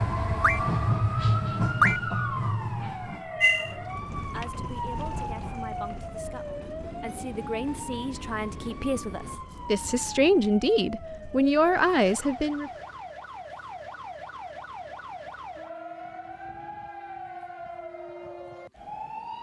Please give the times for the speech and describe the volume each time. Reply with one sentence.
You can hear the speech from 3.5 to 12.7 s, getting louder.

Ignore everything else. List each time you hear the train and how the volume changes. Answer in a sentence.
The train can be heard from 0.0 to 10.2 s, getting quieter.